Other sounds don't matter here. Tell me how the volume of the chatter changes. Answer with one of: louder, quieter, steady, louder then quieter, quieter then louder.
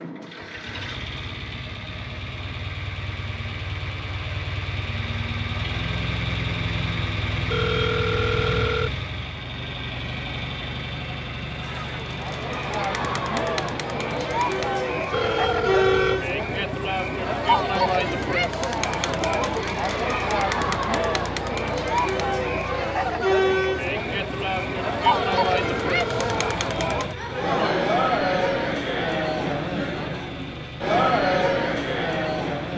steady.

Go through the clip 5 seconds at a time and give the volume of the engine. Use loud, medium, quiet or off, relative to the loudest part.
medium, loud, medium, medium, medium, medium, medium.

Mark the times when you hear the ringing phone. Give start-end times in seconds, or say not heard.
7.5-9.1, 15.1-16.2, 25.1-27.1.